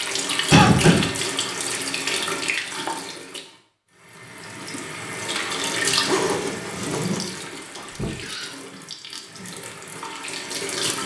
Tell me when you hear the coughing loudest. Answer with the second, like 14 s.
1 s.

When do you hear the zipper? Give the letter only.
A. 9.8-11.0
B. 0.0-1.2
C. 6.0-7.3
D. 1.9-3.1
C.